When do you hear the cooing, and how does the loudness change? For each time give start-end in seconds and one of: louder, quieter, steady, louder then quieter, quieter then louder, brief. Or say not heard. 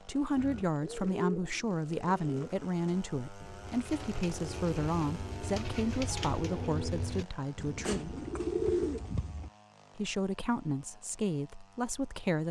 0.3-9.5 quieter then louder.